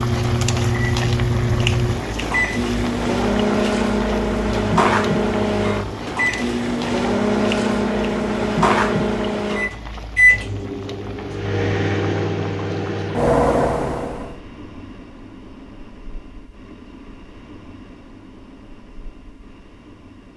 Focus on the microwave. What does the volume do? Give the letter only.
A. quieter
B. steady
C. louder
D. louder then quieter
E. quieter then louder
B.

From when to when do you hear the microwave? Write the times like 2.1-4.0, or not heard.
0.0-14.3.